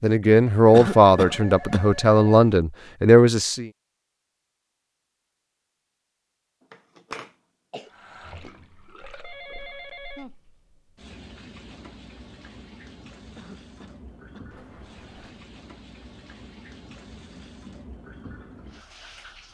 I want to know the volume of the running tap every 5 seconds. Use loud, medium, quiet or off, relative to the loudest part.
off, loud, loud, loud.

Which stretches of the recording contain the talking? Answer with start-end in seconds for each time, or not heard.
0.0-3.7.